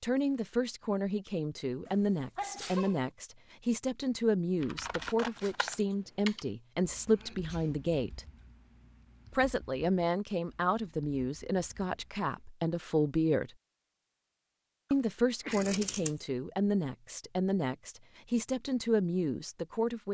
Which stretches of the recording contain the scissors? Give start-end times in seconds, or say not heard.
4.8-5.8, 15.5-16.2.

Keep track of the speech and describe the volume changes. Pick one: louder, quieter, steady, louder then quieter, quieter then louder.
steady.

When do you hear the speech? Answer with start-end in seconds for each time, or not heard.
0.0-8.2, 9.3-13.5, 14.9-20.0.